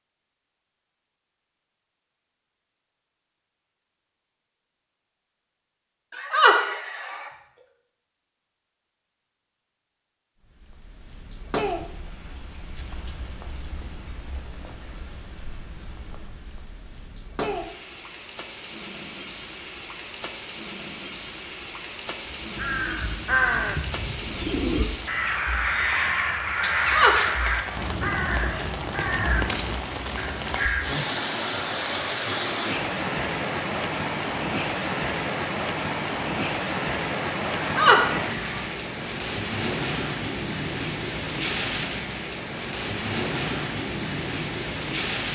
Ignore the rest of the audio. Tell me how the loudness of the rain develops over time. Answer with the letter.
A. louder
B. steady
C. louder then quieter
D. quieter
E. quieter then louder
A.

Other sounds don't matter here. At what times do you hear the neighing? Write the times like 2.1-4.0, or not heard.
6.1-7.3, 26.8-28.6, 37.5-38.6.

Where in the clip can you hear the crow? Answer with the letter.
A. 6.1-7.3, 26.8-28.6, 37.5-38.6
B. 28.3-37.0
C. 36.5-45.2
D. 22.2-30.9
D.